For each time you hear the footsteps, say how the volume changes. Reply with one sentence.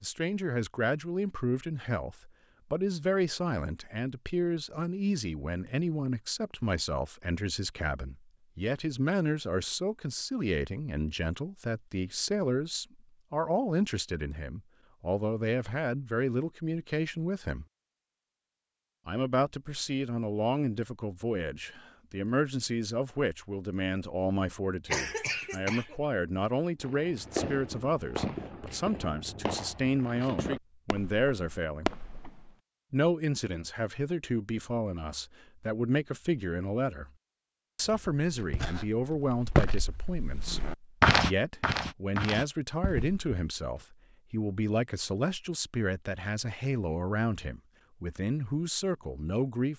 You can hear the footsteps from 37.9 to 43.8 s, getting louder then quieter.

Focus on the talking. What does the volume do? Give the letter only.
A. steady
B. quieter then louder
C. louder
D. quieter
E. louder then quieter
A.